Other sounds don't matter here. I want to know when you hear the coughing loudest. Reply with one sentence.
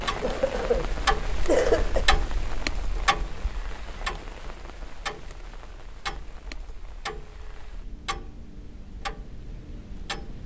The loudest moment of the coughing is at 2 seconds.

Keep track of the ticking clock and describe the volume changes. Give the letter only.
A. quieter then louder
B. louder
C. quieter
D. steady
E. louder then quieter
C.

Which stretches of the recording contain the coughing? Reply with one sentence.
You can hear the coughing from 0.2 to 2.0 s.